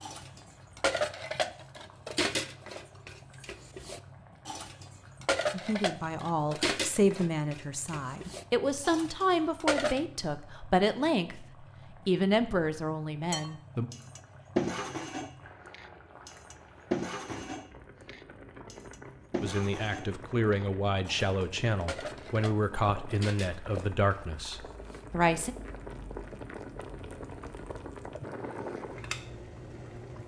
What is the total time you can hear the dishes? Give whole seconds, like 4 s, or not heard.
22 s.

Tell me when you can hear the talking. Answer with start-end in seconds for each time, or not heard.
5.5-13.8, 19.4-25.6.